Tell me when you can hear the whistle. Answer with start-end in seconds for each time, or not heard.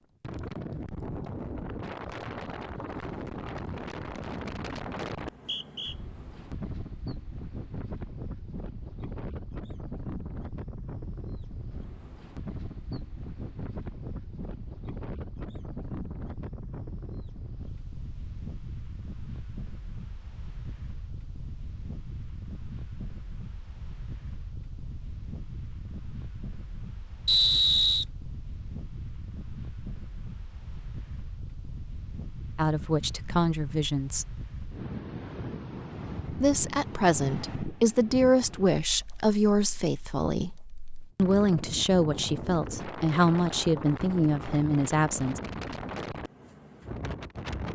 5.3-6.0, 27.2-28.1.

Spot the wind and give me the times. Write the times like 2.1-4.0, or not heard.
0.2-47.7.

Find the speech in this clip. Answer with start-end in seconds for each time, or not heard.
32.5-34.4, 36.3-40.5, 41.1-45.4.